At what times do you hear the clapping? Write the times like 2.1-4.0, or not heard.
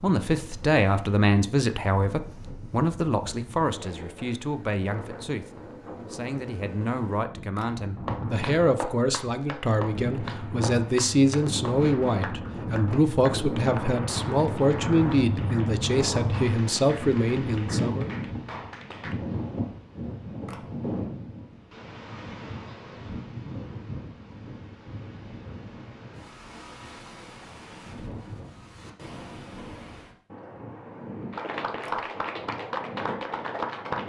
8.0-19.2, 31.3-34.0.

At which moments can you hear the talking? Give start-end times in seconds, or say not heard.
0.0-18.1.